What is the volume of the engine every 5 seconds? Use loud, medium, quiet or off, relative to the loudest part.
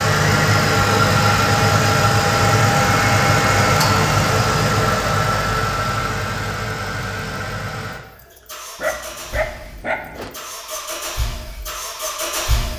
loud, medium, quiet.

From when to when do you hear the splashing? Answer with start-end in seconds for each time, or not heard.
not heard.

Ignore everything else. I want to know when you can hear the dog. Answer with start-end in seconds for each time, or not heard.
8.8-10.3.